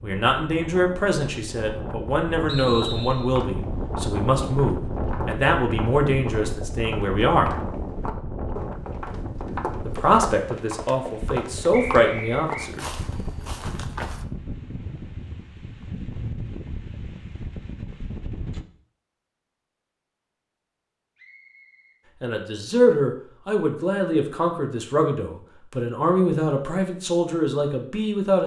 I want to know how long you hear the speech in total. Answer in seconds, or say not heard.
17 s.